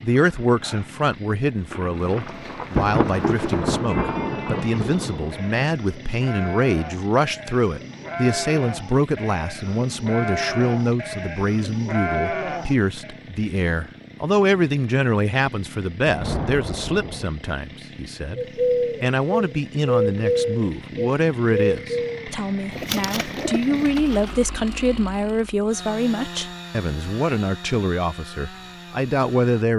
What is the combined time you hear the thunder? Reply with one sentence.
You can hear the thunder for 5 seconds altogether.